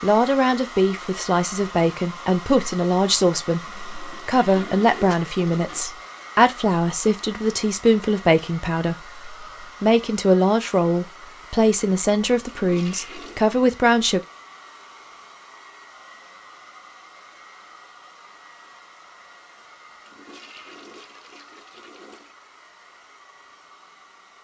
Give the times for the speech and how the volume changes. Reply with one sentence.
The speech can be heard from 0.0 to 14.2 s, at a steady volume.